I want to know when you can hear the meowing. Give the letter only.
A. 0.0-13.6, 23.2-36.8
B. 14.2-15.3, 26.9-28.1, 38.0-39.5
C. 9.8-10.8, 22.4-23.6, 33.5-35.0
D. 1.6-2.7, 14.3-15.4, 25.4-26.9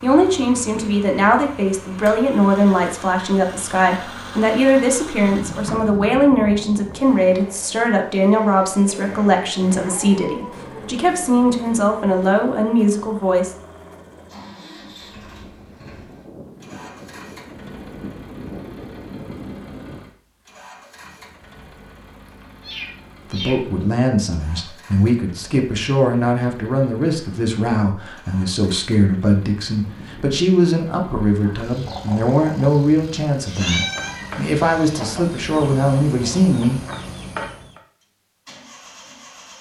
C.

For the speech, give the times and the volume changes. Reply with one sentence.
The speech can be heard from 0.0 to 13.6 s, at a steady volume; and from 23.2 to 36.8 s, at a steady volume.